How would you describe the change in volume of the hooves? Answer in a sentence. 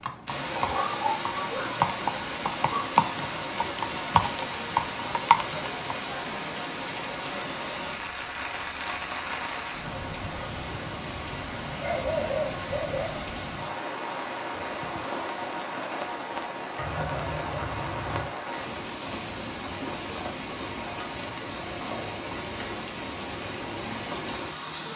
The volume of the hooves goes up.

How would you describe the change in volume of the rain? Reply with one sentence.
The volume of the rain stays about the same.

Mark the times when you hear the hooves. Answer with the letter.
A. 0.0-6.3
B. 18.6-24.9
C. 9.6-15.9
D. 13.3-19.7
A.